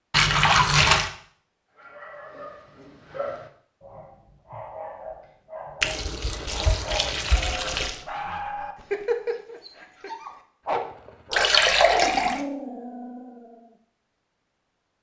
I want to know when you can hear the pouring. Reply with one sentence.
The pouring can be heard from 0.1 to 1.1 s, from 5.8 to 8.0 s and from 11.3 to 12.4 s.